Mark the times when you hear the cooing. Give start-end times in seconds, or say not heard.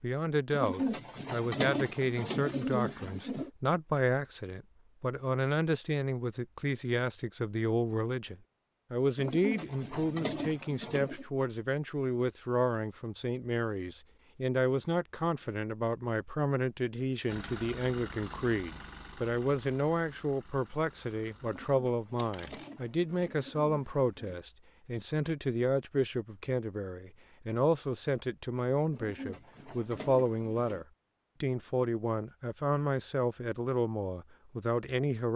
0.5-3.5, 9.2-11.2, 21.4-24.4, 28.9-30.9.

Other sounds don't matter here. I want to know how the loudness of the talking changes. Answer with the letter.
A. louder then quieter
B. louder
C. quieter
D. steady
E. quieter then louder
D.